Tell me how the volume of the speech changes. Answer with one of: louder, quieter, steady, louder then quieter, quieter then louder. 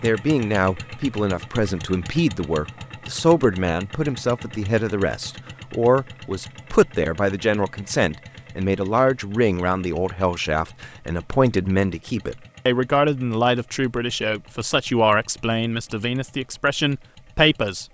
steady.